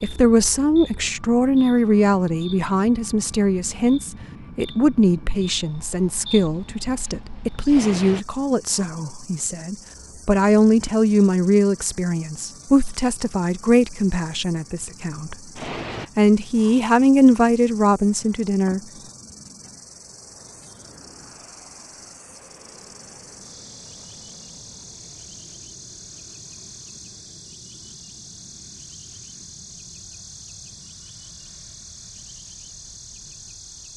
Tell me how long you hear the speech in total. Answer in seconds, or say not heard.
18 s.